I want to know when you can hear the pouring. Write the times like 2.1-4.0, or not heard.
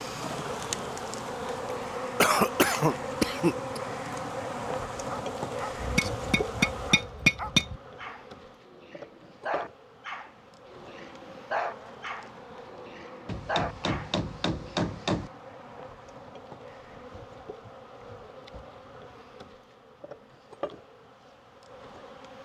not heard.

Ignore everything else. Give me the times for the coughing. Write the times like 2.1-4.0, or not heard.
2.2-3.8.